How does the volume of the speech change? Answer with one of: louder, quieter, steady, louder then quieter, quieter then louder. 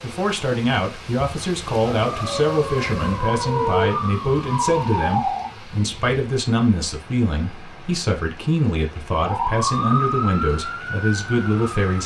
steady.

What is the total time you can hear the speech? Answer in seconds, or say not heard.
12 s.